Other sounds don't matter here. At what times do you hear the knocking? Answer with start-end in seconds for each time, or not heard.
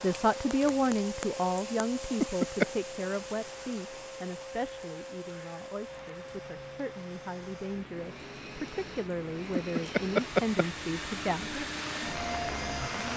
2.2-2.6, 9.5-10.7.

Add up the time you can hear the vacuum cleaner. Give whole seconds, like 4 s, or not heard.
13 s.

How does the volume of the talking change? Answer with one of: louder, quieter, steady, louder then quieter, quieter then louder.
quieter then louder.